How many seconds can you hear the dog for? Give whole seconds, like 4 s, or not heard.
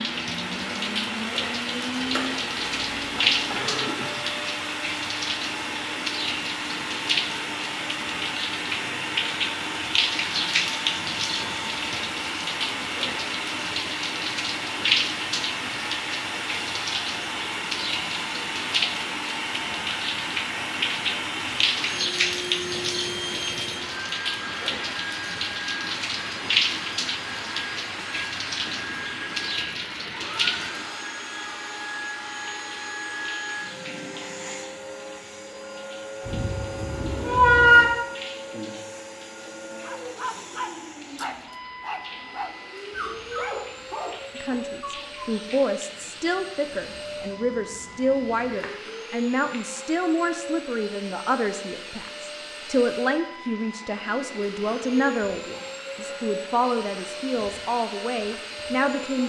6 s.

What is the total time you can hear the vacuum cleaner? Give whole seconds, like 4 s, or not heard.
59 s.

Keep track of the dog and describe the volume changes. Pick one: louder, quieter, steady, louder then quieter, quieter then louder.
quieter.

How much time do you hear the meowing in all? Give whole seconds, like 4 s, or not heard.
3 s.